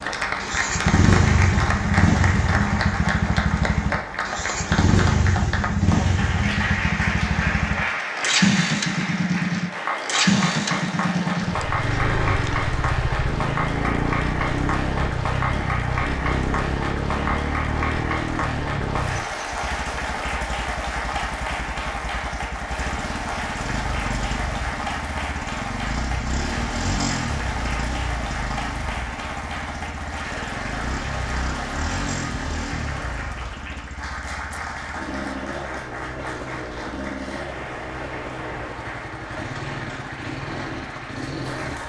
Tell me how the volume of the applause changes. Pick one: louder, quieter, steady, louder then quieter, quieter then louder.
quieter.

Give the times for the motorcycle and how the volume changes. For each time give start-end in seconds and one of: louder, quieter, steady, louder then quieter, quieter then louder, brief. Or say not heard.
0.0-41.8 quieter.